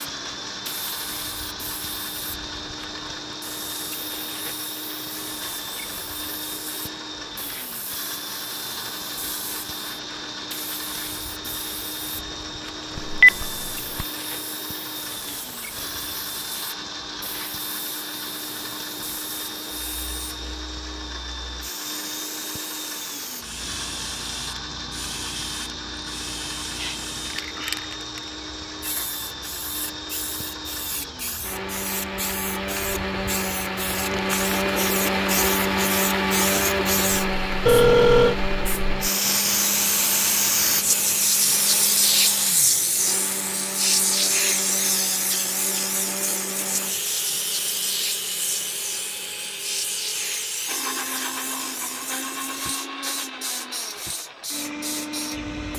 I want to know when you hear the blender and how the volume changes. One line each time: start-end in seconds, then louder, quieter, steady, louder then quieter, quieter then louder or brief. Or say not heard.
0.0-55.7 louder then quieter.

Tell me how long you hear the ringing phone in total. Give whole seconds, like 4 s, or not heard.
2 s.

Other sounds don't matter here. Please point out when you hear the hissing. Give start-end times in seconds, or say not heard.
0.0-55.7.